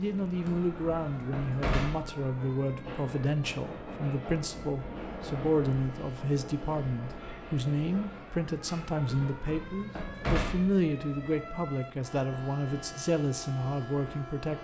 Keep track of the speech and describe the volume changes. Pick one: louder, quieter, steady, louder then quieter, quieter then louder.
steady.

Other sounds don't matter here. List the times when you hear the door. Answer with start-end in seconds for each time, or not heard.
0.5-2.1, 9.1-10.8.